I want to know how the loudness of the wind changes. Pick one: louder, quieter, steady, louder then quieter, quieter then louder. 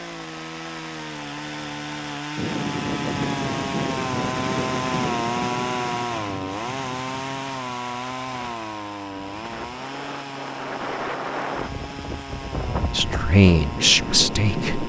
quieter then louder.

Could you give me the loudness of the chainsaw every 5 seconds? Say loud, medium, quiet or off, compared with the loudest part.
loud, loud, medium.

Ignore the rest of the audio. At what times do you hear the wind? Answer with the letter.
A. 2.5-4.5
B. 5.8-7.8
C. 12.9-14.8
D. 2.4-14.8
D.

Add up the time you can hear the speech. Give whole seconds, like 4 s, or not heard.
2 s.